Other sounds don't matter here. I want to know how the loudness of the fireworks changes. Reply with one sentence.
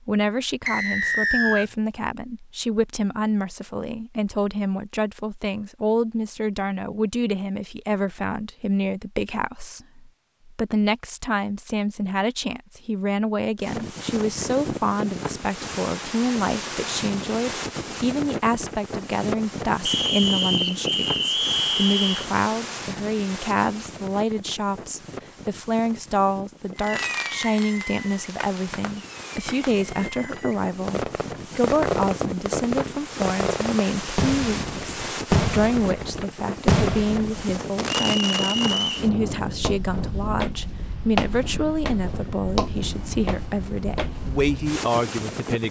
The volume of the fireworks goes up.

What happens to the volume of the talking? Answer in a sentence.
The volume of the talking stays about the same.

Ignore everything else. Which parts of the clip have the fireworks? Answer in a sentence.
The fireworks can be heard from 26.8 to 38.9 s.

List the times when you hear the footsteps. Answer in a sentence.
You can hear the footsteps from 39.6 to 44.5 s.